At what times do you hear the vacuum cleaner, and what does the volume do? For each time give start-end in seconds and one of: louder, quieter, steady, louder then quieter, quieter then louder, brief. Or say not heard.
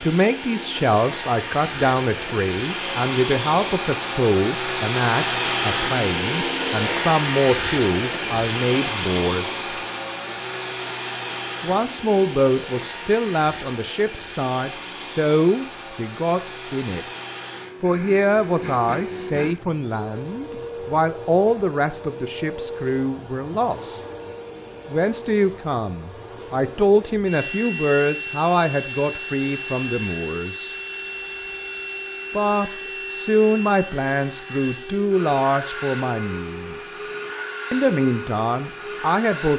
0.0-39.5 quieter.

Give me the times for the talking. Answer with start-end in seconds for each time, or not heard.
0.0-9.7, 11.6-17.1, 17.8-24.0, 24.9-30.8, 32.3-37.0, 37.7-39.5.